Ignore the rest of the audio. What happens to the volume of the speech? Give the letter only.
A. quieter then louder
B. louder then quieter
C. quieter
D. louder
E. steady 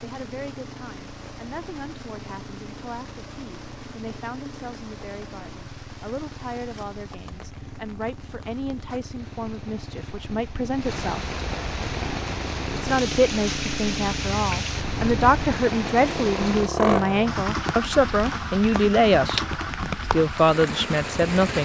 D.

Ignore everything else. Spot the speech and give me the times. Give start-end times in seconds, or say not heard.
0.0-11.3, 12.7-21.5.